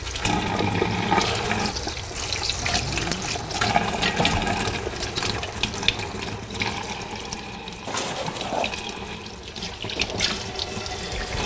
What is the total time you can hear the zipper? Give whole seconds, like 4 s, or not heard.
2 s.